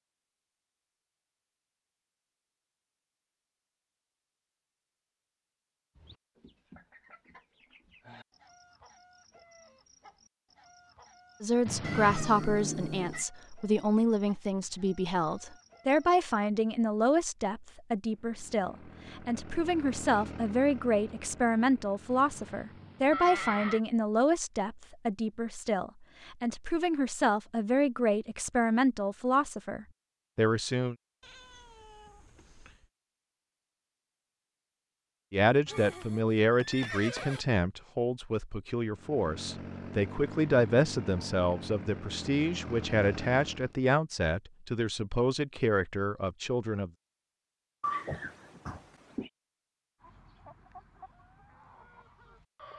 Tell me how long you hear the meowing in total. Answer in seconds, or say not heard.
5 s.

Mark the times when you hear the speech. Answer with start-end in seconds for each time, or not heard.
11.4-30.9, 35.3-46.9.